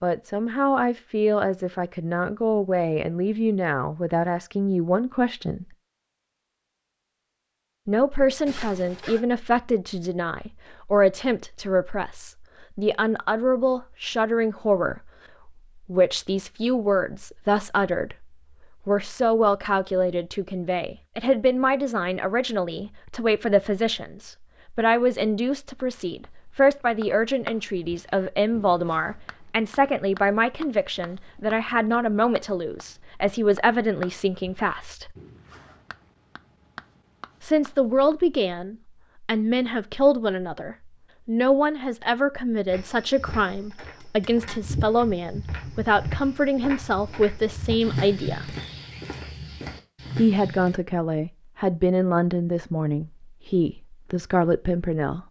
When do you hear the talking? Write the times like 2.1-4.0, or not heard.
0.0-5.7, 7.8-18.2, 18.9-35.1, 37.4-48.5, 50.1-55.2.